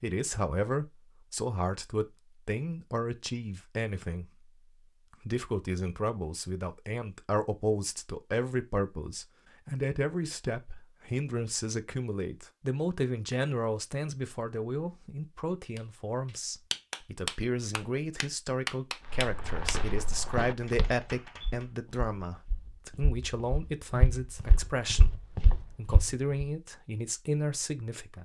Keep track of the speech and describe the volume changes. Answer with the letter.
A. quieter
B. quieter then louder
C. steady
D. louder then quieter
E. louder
C.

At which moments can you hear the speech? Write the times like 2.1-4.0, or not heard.
0.0-4.5, 5.2-28.2.